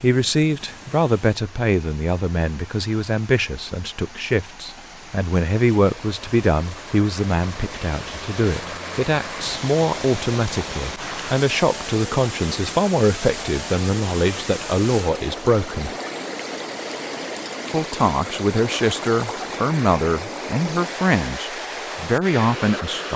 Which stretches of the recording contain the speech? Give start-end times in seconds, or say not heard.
0.0-15.9, 17.7-23.1.